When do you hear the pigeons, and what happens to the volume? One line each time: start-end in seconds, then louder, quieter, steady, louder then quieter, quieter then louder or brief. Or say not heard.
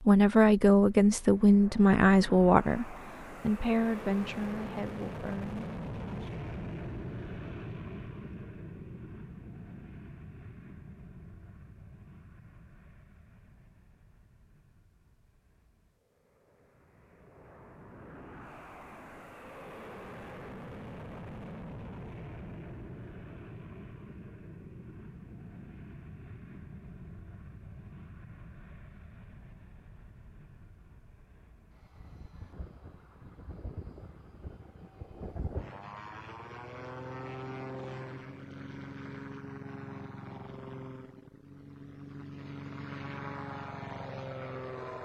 not heard.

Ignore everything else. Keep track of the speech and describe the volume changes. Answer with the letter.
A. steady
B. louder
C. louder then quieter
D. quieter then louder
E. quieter
E.